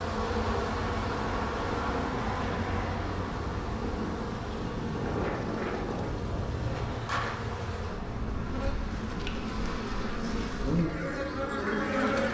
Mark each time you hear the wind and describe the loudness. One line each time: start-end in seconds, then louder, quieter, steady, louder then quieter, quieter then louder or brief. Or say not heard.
0.0-12.3 louder then quieter.